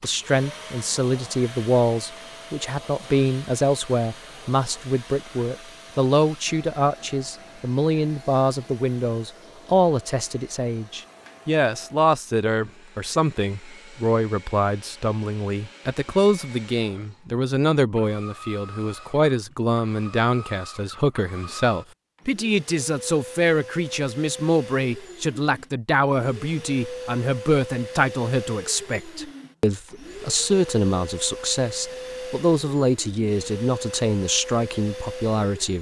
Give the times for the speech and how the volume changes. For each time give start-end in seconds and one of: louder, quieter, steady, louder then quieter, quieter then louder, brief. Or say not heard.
0.0-35.7 steady.